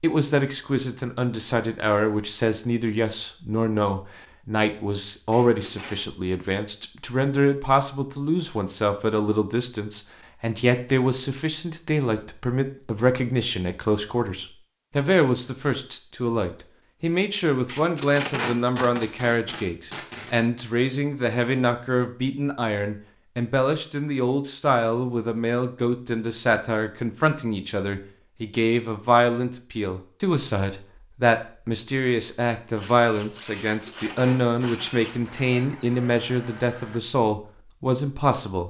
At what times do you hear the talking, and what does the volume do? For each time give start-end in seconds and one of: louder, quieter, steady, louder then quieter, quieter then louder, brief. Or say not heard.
0.0-38.6 steady.